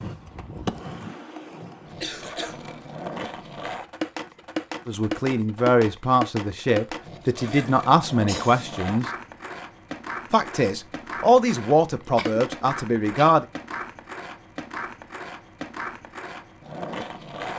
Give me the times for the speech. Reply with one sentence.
The speech can be heard from 4.8 to 9.1 s and from 10.3 to 13.4 s.